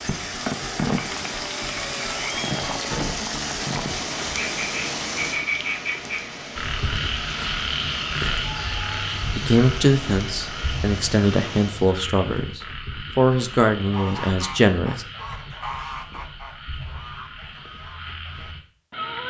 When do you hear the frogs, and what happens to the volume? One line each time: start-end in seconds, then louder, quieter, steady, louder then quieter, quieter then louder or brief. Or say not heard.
0.0-19.2 louder then quieter.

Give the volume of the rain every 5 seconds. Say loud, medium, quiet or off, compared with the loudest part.
loud, medium, medium, off.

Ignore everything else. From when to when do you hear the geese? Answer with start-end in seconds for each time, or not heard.
13.8-19.2.